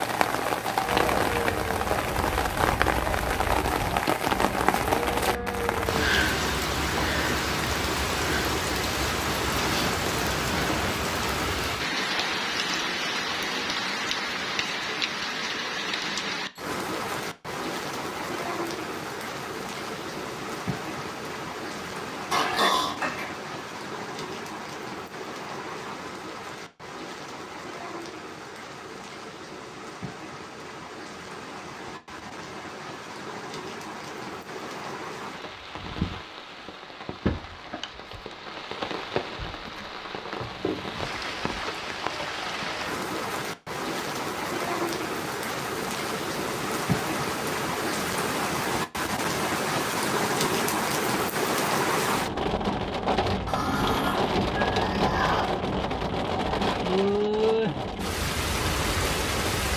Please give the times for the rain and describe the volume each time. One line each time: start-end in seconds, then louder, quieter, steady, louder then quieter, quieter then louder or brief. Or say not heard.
0.0-59.7 quieter then louder.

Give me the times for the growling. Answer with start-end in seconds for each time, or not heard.
22.3-23.2, 53.5-55.5.